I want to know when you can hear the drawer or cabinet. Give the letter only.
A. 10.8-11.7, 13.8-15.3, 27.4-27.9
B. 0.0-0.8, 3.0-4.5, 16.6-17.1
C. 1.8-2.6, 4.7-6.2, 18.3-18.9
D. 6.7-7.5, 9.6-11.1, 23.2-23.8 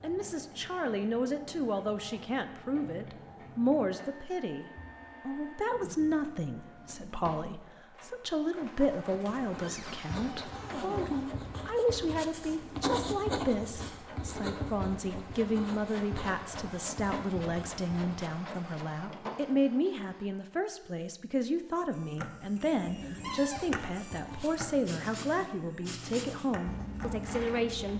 D.